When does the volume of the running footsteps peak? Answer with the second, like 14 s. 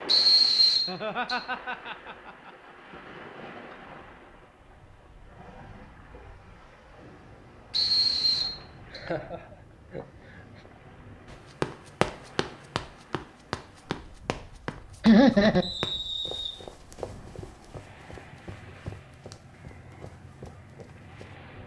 12 s.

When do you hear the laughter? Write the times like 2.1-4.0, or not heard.
0.8-2.5, 8.9-10.6, 15.0-15.7.